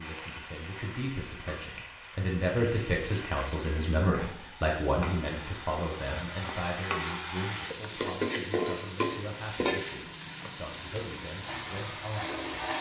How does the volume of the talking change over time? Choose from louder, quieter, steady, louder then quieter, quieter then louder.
quieter.